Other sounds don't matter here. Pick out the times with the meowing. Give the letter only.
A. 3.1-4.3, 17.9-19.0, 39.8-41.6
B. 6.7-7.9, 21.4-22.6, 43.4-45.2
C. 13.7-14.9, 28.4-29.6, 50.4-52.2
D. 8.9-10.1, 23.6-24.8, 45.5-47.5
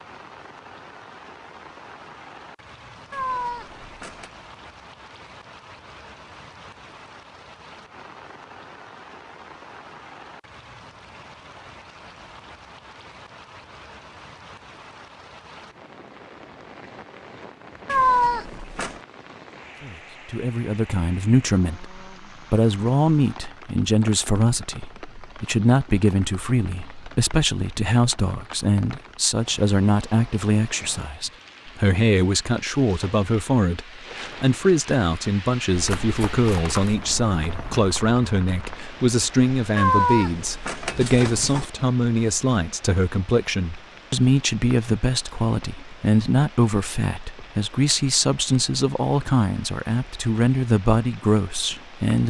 A.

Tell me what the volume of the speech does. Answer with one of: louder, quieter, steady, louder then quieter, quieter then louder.
steady.